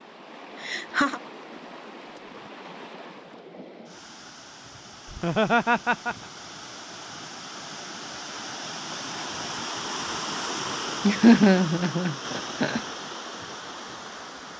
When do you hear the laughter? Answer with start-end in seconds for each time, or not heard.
0.6-1.2, 5.1-6.2, 11.1-12.8.